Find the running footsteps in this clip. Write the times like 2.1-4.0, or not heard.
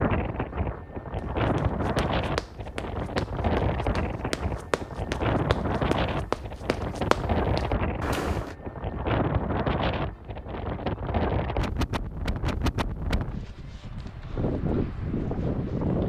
1.1-8.6.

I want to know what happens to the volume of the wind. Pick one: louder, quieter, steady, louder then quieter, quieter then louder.
steady.